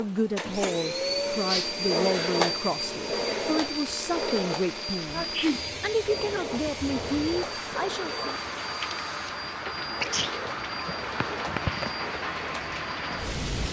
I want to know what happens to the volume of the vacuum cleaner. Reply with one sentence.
The volume of the vacuum cleaner goes down.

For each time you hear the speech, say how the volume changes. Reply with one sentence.
You can hear the speech from 0.0 to 8.2 s, at a steady volume.